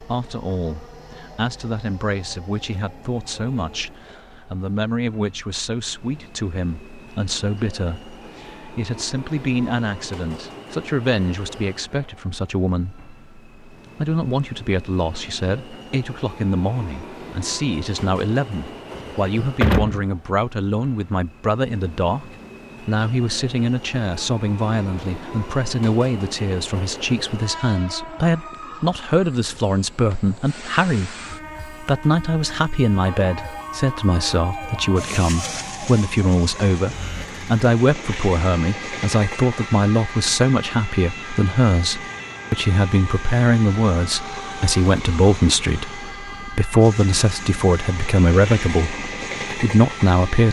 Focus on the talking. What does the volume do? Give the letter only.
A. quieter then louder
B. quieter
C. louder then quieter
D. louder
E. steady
D.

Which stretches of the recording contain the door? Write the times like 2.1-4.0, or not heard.
18.9-20.1.